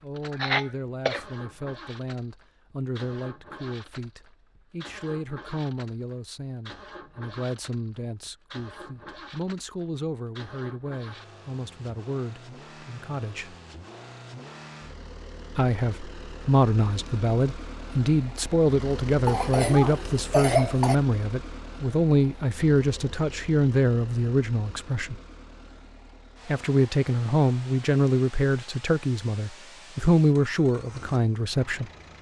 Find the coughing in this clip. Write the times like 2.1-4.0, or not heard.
0.3-1.2, 19.2-20.9.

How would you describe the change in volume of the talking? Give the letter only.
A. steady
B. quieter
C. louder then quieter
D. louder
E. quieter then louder
D.